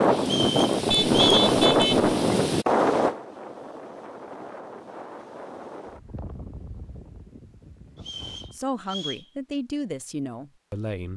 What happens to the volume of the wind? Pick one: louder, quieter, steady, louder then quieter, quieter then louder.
quieter.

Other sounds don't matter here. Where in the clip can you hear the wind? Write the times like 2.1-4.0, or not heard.
0.0-8.6.